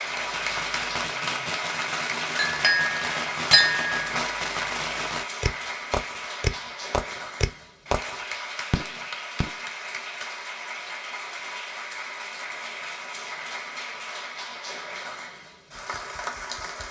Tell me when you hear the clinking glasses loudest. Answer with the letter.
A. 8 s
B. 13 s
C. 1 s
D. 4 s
D.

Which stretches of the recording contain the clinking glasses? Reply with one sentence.
You can hear the clinking glasses from 2.4 to 4.3 s.